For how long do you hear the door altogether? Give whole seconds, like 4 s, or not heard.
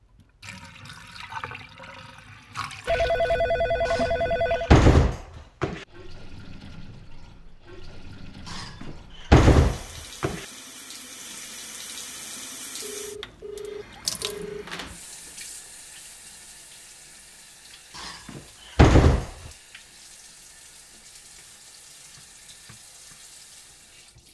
5 s.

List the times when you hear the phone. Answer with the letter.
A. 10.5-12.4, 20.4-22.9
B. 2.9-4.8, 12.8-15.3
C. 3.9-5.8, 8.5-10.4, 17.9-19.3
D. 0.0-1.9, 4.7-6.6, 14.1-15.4
B.